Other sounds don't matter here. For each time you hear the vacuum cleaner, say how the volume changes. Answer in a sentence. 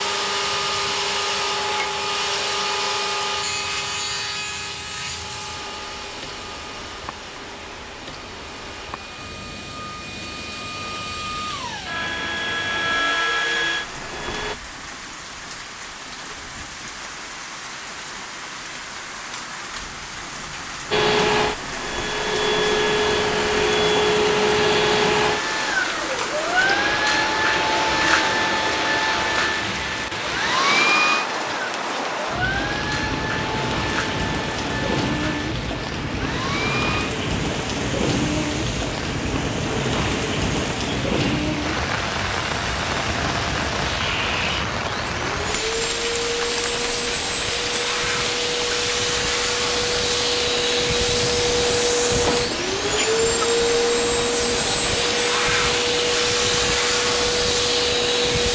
You can hear the vacuum cleaner from 0.0 to 14.6 s, getting quieter then louder; and from 20.9 to 58.5 s, getting quieter then louder.